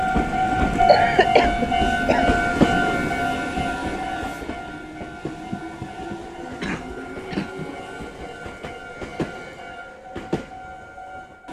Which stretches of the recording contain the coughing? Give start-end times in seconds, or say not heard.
0.8-2.4, 6.6-7.7.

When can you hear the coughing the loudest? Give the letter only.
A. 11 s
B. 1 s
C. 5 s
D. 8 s
B.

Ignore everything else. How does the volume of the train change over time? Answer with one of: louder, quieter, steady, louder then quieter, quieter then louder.
quieter.